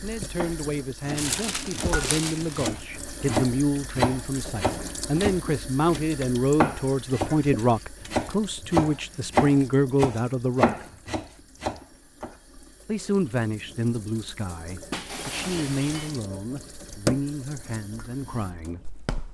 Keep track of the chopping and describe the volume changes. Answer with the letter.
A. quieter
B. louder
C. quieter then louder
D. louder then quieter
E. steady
B.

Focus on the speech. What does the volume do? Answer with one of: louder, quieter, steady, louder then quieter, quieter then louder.
louder then quieter.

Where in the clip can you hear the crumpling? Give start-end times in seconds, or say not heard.
1.1-2.6.